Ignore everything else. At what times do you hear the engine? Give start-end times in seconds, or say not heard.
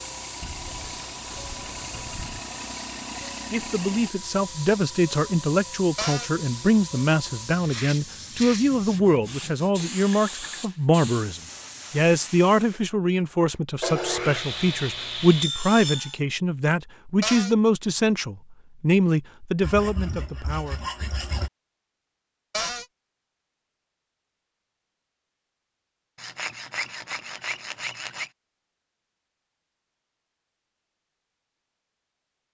0.0-4.1.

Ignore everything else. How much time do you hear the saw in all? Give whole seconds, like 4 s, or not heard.
11 s.